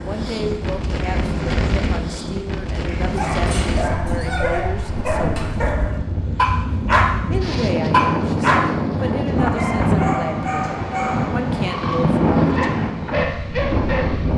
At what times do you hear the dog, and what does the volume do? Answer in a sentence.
You can hear the dog from 3.1 to 14.3 s, getting louder then quieter.